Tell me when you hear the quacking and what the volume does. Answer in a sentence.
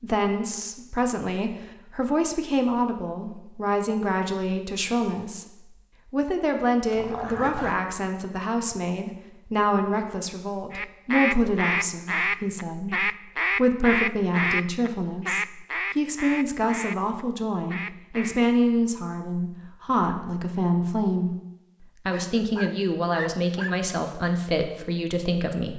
You can hear the quacking from 10.7 to 18.4 s, getting quieter.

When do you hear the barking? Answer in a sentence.
You can hear the barking from 6.9 to 7.8 s and from 22.1 to 23.8 s.